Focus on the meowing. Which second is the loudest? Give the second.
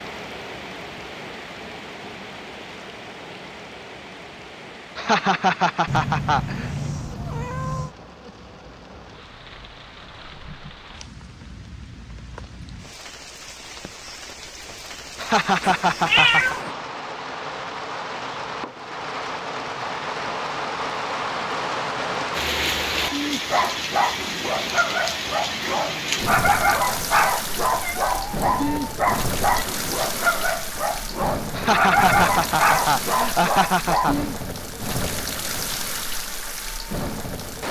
16 s.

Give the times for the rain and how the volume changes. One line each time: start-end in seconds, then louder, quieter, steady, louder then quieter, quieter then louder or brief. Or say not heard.
0.0-37.6 louder.